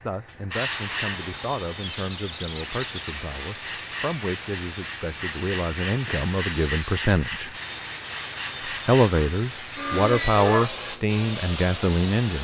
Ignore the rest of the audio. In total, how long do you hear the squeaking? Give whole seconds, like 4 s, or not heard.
2 s.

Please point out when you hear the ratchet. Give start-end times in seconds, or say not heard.
not heard.